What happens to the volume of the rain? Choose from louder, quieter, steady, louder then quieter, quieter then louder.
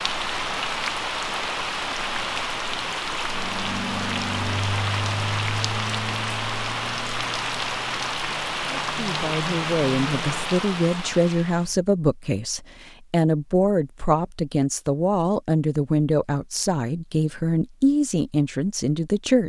steady.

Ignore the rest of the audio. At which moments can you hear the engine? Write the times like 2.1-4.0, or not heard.
3.2-10.4.